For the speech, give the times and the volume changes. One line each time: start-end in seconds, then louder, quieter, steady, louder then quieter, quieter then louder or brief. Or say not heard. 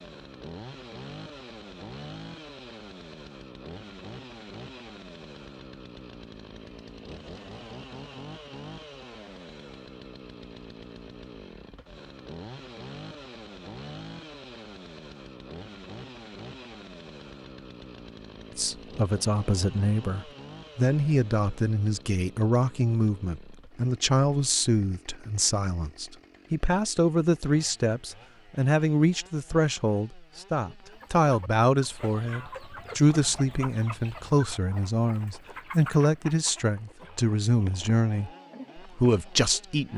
18.6-39.9 steady.